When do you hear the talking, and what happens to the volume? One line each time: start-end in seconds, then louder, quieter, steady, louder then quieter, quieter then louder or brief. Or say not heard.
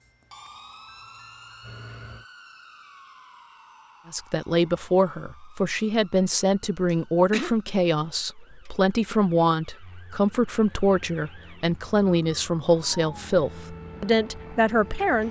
4.1-15.2 steady.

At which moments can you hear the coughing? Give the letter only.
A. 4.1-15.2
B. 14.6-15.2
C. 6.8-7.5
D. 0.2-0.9
C.